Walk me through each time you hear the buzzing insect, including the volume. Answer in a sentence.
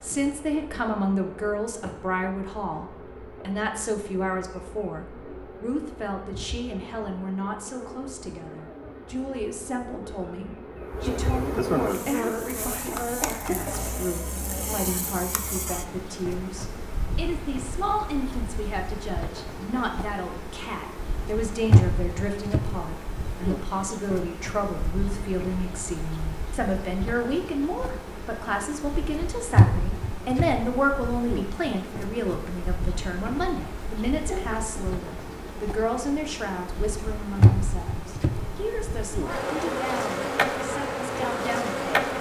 The buzzing insect can be heard from 0.0 to 42.1 s, getting louder.